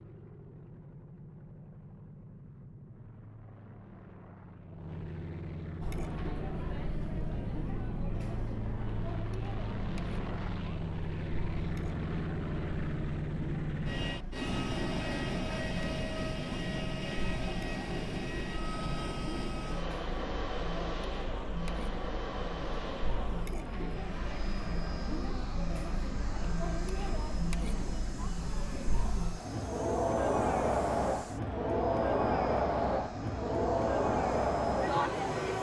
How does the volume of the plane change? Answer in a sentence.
The loudness of the plane goes up, then down.